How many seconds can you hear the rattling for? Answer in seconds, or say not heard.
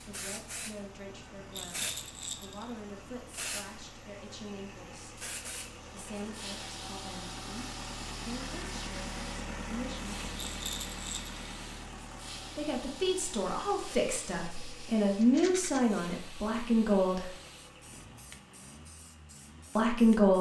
3 s.